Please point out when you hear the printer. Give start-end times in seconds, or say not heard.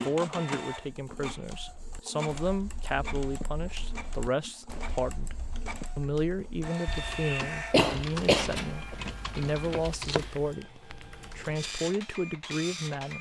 0.0-13.1.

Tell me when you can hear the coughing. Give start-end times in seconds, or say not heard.
7.7-8.9.